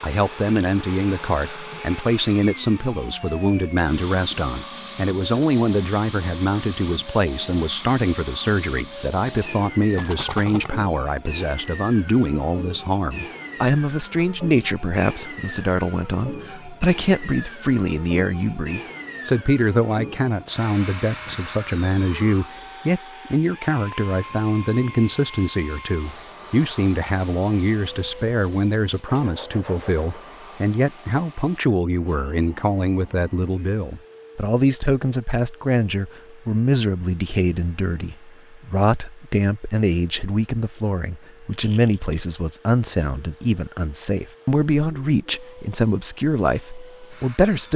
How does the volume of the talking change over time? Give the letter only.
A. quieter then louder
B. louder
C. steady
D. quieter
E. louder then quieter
C.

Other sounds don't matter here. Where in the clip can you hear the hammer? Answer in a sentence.
The hammer can't be heard in this clip.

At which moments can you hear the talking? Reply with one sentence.
You can hear the talking from 0.0 to 47.7 s.